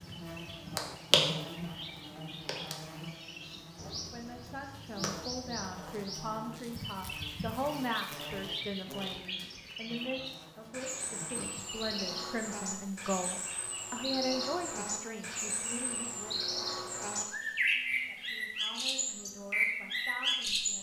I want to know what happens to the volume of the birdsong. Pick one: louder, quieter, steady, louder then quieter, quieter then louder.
louder.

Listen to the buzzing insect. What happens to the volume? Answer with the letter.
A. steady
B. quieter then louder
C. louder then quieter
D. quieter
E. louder
D.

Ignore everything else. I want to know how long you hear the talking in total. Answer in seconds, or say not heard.
15 s.